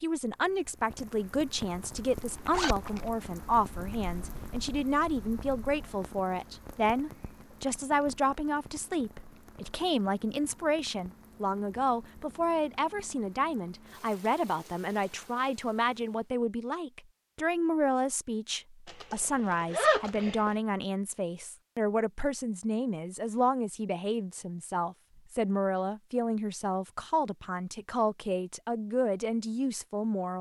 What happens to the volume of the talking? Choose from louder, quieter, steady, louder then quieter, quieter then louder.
steady.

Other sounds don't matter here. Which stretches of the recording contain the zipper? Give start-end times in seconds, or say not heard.
1.7-3.1, 18.9-20.5.